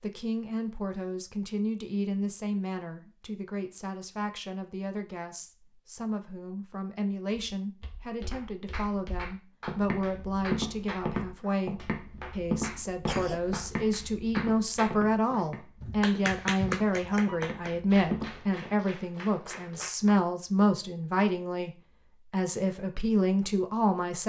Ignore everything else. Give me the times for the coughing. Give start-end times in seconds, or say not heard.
13.1-13.7.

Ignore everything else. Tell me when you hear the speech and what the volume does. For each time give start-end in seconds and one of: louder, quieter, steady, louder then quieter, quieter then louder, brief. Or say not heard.
0.0-21.7 louder
22.3-24.2 brief.